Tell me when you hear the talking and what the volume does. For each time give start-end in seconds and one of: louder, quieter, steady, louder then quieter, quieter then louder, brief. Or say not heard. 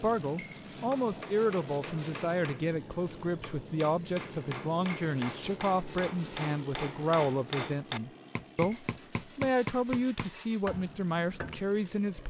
0.0-12.2 steady.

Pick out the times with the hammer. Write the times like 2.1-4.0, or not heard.
0.9-11.7.